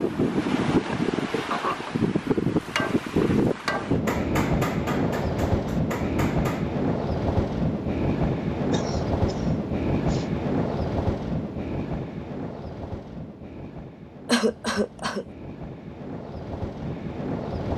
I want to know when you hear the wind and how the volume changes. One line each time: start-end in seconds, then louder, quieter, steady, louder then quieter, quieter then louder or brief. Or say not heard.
0.0-17.7 quieter.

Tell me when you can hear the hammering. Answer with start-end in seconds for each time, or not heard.
2.8-6.7.